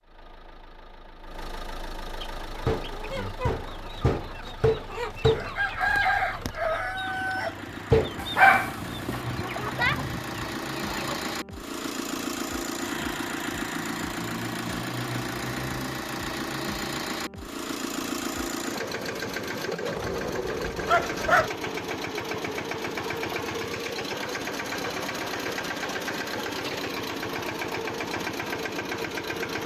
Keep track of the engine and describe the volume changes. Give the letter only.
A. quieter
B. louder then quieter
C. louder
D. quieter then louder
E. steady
C.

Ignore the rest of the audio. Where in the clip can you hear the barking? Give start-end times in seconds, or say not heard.
8.2-9.2, 19.9-21.5.